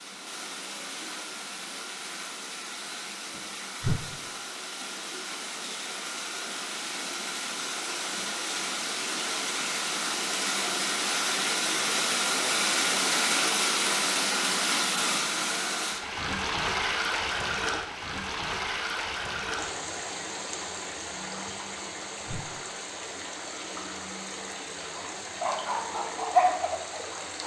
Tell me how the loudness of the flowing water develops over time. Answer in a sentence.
The loudness of the flowing water goes up, then down.